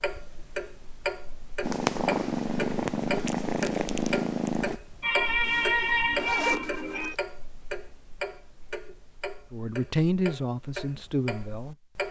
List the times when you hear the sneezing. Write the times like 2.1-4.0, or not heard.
5.0-7.2.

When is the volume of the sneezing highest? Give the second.
6 s.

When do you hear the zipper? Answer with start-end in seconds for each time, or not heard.
5.4-7.2.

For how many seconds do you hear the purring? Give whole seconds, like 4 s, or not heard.
3 s.